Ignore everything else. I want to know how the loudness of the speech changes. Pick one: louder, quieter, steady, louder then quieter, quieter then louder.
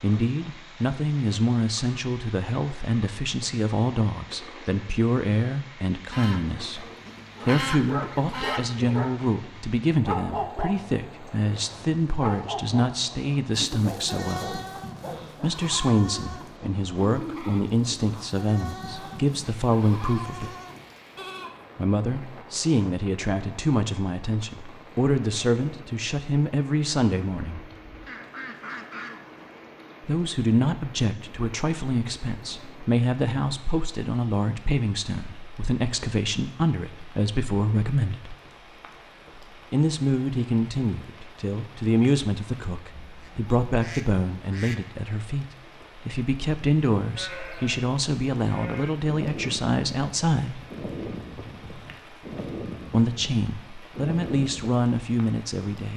steady.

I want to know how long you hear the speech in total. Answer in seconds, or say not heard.
48 s.